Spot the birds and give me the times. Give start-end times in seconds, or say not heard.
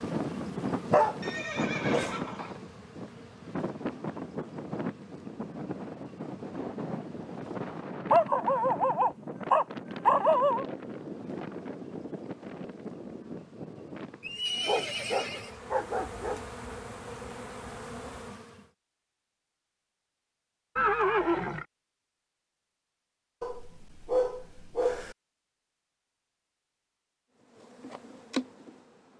not heard.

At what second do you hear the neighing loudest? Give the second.
21 s.